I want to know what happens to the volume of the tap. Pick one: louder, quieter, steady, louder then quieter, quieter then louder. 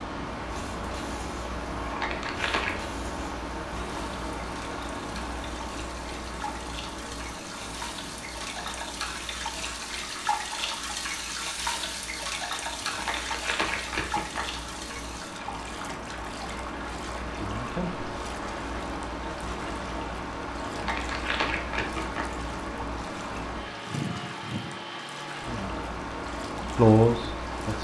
louder then quieter.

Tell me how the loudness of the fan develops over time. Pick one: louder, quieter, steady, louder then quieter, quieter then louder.
quieter then louder.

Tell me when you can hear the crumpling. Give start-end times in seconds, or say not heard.
1.8-2.9, 12.8-14.4, 20.6-22.2.